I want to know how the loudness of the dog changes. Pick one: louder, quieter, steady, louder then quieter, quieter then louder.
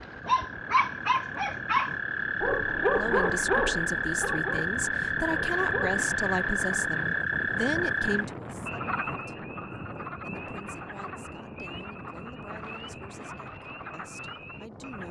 quieter.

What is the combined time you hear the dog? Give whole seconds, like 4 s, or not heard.
6 s.